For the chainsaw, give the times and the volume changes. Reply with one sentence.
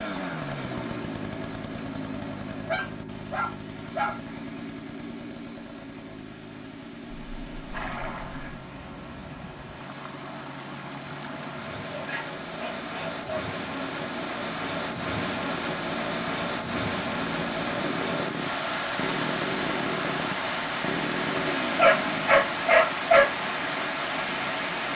You can hear the chainsaw from 0.0 to 22.8 s, getting quieter then louder.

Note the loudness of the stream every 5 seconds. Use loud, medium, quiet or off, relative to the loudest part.
quiet, quiet, medium, loud, loud.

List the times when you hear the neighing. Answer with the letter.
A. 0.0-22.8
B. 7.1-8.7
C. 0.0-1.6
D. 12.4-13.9
B.